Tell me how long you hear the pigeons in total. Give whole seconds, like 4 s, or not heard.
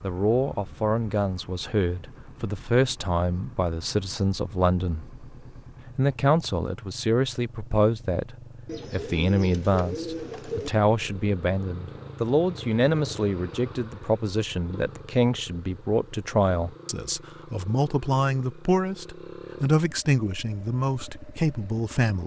2 s.